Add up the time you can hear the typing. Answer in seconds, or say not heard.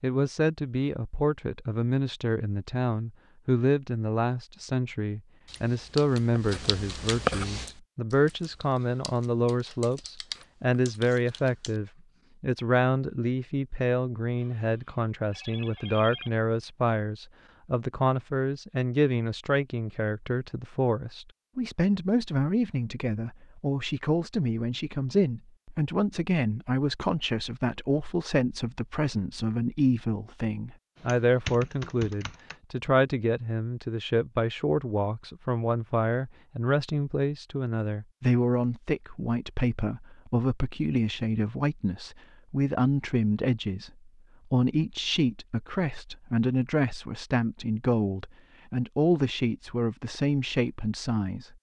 8 s.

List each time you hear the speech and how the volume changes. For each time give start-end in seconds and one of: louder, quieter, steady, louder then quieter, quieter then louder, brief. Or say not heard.
0.0-51.5 steady.